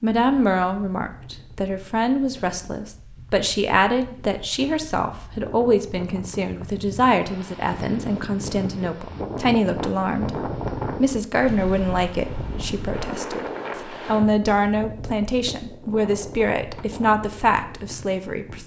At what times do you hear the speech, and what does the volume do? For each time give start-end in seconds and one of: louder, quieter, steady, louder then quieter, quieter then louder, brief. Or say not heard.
0.0-18.6 steady.